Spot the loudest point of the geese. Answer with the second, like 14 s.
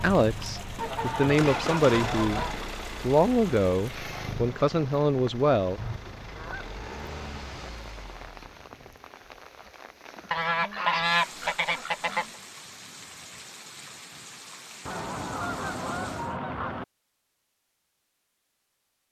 11 s.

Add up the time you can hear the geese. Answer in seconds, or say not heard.
8 s.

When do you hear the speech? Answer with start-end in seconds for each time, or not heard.
0.0-5.8.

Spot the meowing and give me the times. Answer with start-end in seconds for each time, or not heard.
not heard.